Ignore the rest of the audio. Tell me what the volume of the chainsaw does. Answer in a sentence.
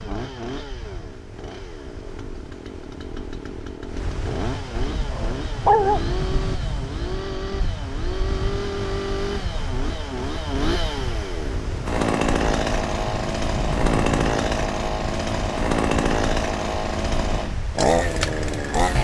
The volume of the chainsaw goes up.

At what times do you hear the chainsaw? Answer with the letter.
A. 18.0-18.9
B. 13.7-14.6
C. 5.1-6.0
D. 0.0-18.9
D.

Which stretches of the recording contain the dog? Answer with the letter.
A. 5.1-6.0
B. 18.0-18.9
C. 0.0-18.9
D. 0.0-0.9
A.